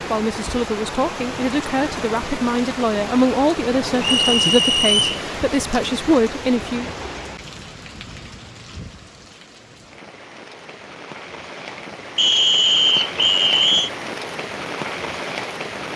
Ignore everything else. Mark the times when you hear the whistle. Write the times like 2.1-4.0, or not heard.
4.0-5.2, 12.2-13.9.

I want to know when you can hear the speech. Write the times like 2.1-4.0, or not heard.
0.1-6.9.